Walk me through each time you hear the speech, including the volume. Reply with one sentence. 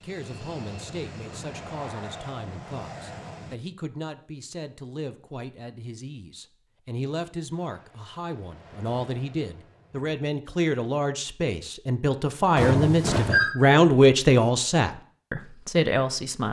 The speech can be heard from 0.0 to 16.4 s, getting louder.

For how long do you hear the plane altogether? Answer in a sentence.
The plane can be heard for 6 seconds in total.